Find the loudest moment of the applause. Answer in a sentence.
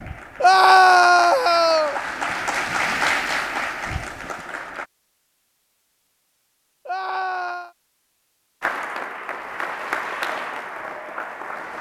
The volume of the applause peaks at 3 seconds.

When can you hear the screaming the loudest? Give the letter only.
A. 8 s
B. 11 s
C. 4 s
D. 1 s
D.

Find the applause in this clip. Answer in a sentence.
The applause can be heard from 0.0 to 4.9 s and from 8.6 to 11.7 s.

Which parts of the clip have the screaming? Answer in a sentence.
The screaming can be heard from 0.4 to 2.0 s and from 6.8 to 7.7 s.